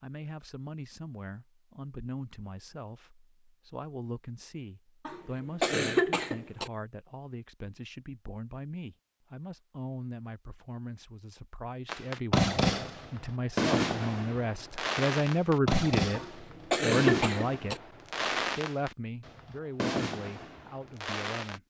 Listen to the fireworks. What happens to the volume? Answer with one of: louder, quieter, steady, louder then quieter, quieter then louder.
quieter.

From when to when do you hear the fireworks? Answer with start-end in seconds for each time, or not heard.
11.8-21.6.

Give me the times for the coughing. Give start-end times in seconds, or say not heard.
5.0-6.7, 16.1-17.8.